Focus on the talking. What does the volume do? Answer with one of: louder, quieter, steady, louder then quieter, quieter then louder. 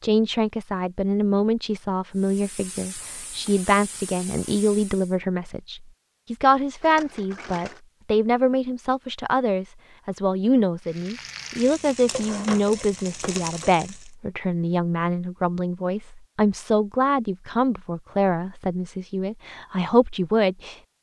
steady.